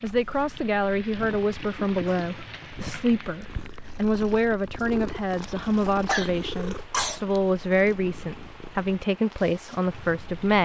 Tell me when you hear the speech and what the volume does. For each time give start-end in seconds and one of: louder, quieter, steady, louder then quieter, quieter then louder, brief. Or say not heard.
0.0-10.6 steady.